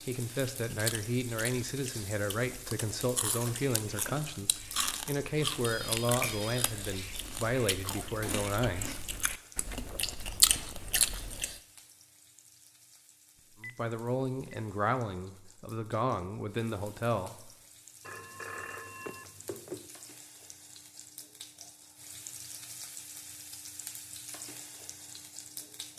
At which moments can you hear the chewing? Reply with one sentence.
The chewing can be heard from 0.7 to 11.6 s.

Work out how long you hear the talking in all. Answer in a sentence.
The talking can be heard for 13 seconds in total.